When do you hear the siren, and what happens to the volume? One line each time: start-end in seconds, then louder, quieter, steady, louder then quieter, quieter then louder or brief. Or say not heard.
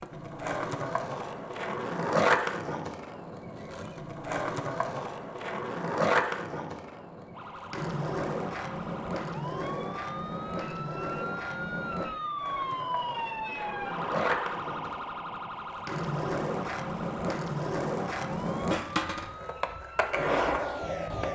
7.3-21.3 louder then quieter.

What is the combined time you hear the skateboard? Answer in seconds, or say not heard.
21 s.